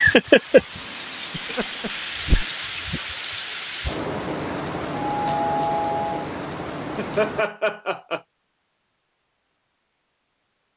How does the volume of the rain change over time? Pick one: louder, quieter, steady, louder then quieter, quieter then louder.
quieter.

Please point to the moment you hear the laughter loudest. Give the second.
7 s.